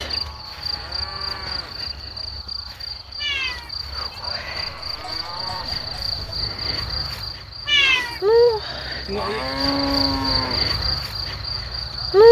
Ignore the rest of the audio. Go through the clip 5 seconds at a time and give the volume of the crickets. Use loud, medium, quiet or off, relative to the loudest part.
quiet, medium, loud.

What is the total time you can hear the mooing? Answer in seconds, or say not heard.
4 s.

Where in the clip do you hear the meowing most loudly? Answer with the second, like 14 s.
8 s.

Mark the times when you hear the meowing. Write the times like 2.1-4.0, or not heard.
3.1-4.2, 7.7-8.2.